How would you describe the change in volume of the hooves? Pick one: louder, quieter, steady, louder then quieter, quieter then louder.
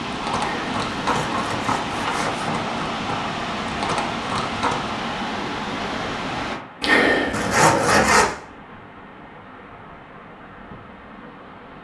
quieter then louder.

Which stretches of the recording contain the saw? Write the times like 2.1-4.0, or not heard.
0.3-2.5, 6.8-8.3.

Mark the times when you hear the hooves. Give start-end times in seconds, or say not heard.
0.1-5.0.